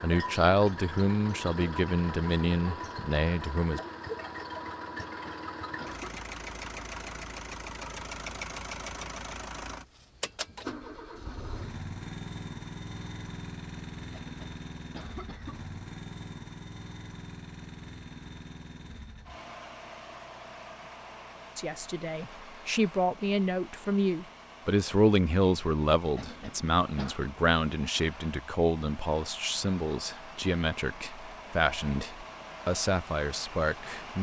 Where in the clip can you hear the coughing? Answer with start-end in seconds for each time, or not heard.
5.0-6.2, 14.1-15.6, 26.1-27.2.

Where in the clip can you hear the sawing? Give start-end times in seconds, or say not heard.
not heard.